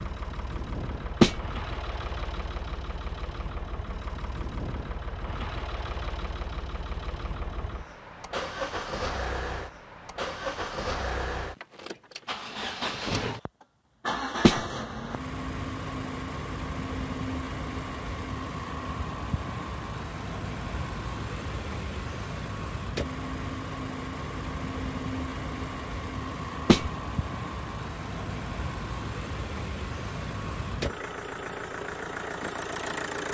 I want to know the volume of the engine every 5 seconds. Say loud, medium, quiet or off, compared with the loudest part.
medium, loud, loud, loud, loud, loud, loud.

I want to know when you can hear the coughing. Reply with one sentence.
The coughing can't be heard in this clip.